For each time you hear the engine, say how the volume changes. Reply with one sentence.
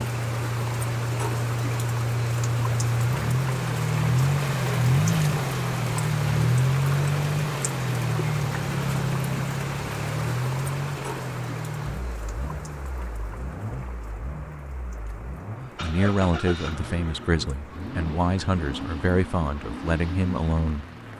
The engine can be heard from 0.0 to 21.1 s, getting quieter.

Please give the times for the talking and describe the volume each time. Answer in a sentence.
You can hear the talking from 15.8 to 20.9 s, at a steady volume.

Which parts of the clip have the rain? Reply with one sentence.
You can hear the rain from 0.0 to 21.1 s.